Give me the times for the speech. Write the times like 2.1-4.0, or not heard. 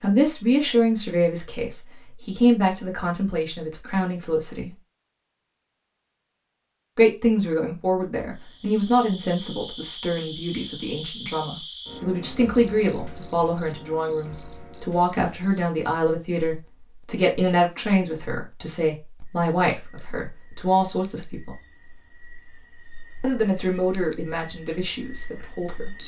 0.0-4.7, 7.0-21.6, 23.2-25.9.